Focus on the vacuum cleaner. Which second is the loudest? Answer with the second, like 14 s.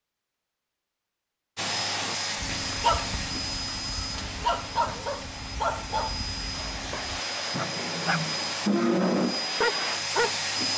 9 s.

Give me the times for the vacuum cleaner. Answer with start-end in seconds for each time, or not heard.
1.6-10.7.